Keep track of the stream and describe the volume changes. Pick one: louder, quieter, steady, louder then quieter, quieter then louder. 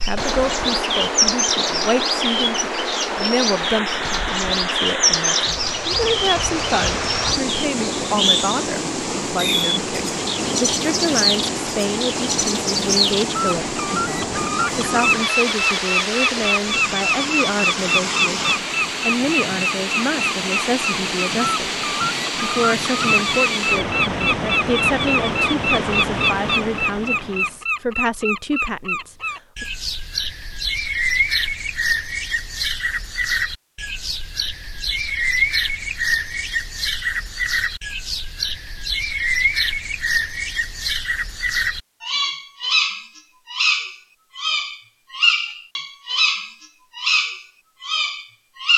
steady.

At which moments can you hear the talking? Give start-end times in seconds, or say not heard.
0.0-21.6, 22.4-29.6.